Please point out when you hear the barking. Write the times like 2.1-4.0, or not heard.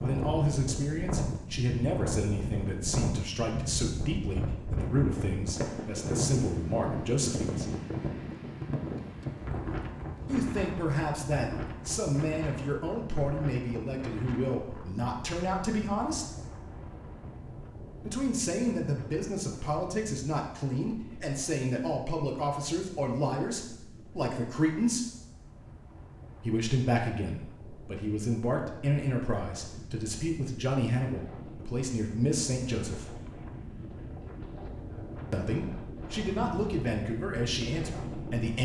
not heard.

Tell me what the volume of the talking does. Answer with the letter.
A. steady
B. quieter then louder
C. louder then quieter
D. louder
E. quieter
A.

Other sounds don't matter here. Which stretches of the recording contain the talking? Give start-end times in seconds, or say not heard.
0.0-7.8, 10.2-16.2, 18.0-25.1, 26.4-33.1, 35.3-38.6.